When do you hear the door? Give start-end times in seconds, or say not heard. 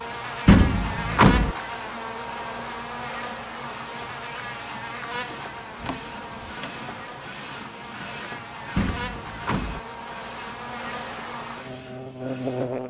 0.5-1.6, 5.8-6.8, 8.8-9.8.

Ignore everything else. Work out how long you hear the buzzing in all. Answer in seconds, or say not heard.
13 s.